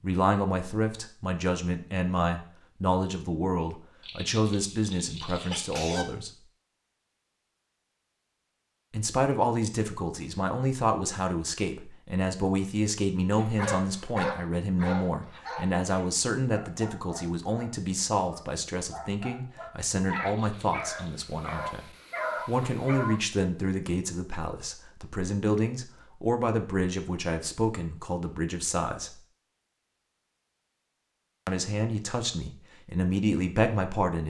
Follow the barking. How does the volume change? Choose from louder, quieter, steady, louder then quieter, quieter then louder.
quieter then louder.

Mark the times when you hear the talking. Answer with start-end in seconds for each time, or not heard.
0.0-6.3, 8.9-29.2, 31.4-34.2.